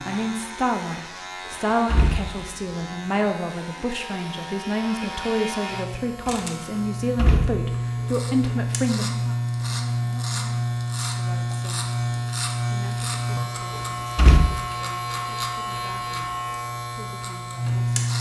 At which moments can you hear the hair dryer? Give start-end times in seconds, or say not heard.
not heard.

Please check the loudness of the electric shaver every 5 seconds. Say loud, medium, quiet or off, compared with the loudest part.
medium, loud, loud, loud.